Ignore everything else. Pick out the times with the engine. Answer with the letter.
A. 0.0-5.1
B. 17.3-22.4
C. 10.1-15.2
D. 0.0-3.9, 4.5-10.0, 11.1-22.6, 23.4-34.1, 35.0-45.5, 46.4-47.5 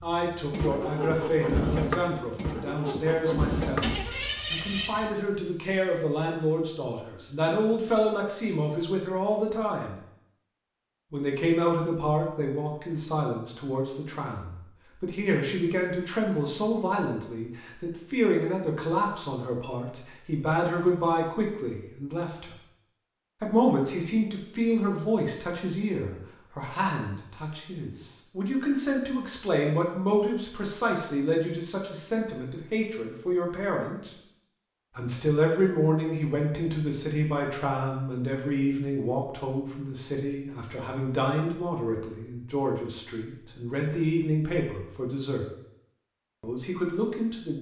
A.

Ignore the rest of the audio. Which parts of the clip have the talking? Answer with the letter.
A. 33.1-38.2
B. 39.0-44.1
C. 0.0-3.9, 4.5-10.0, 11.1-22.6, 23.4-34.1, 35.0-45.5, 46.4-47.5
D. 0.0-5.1
C.